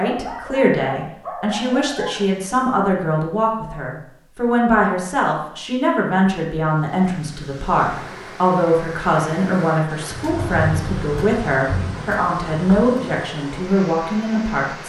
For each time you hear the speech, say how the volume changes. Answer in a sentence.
You can hear the speech from 0.0 to 14.8 s, at a steady volume.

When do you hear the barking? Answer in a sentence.
The barking can be heard from 0.0 to 2.2 s.